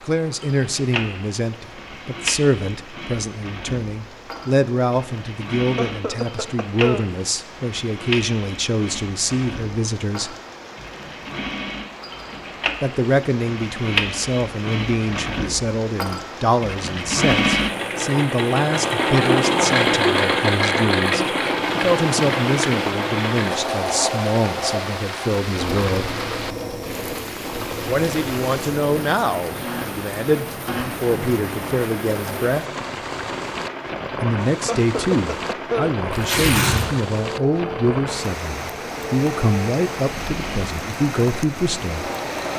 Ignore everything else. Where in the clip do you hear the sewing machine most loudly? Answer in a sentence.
The volume of the sewing machine peaks at 20 seconds.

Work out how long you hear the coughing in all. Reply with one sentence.
You can hear the coughing for 3 seconds altogether.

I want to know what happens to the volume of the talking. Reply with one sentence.
The volume of the talking stays about the same.